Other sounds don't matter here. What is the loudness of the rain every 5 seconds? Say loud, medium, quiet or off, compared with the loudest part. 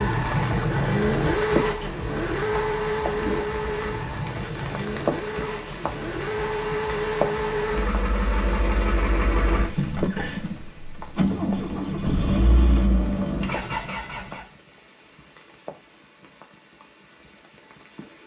loud, loud, medium, quiet.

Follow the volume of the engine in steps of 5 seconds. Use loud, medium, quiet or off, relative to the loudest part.
loud, loud, loud, off.